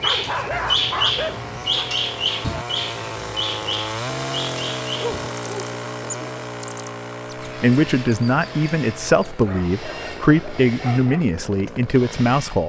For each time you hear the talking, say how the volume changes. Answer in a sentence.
The talking can be heard from 7.5 to 12.6 s, at a steady volume.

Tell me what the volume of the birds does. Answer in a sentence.
The volume of the birds goes down.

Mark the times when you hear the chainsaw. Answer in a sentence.
You can hear the chainsaw from 0.0 to 12.6 s.